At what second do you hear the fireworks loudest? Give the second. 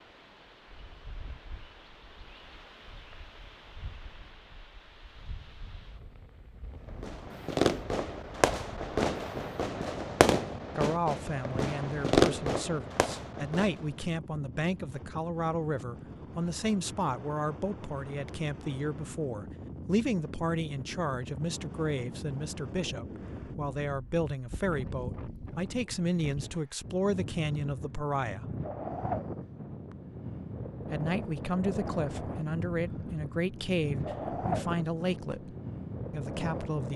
12 s.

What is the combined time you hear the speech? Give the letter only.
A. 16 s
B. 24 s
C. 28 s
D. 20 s
B.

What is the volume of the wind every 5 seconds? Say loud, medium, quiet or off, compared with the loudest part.
quiet, quiet, medium, medium, medium, loud, loud, loud.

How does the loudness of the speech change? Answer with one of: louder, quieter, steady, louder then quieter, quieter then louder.
steady.